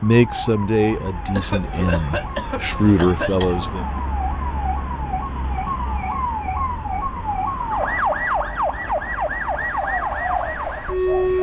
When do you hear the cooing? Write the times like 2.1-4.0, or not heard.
9.8-11.3.